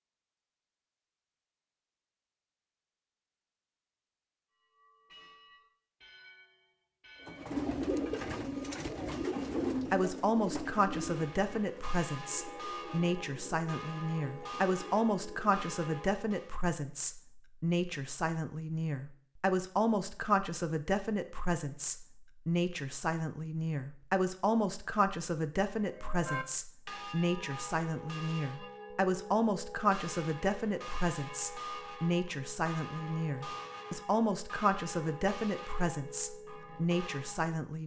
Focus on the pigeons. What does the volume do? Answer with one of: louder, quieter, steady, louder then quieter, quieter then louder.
quieter.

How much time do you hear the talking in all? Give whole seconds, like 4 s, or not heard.
28 s.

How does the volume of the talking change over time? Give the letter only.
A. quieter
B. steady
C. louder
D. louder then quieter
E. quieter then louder
B.